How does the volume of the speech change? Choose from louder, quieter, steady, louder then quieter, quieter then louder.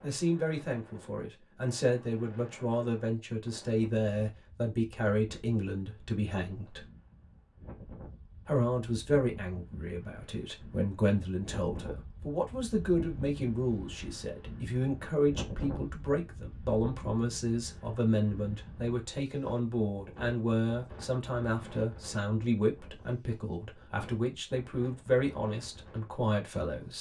steady.